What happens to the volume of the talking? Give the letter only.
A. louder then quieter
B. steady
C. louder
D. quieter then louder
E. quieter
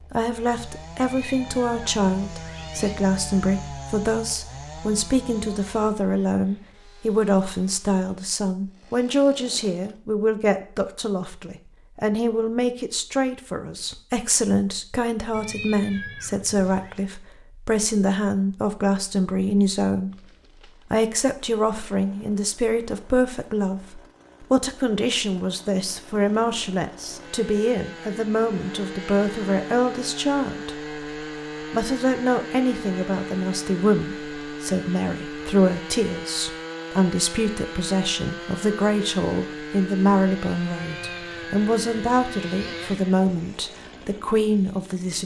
B.